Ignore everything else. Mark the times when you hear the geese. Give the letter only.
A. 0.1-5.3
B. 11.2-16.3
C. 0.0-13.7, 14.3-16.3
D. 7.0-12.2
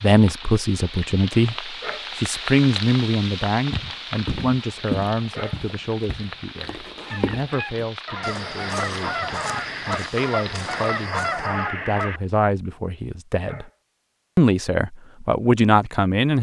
D.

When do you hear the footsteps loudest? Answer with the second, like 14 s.
5 s.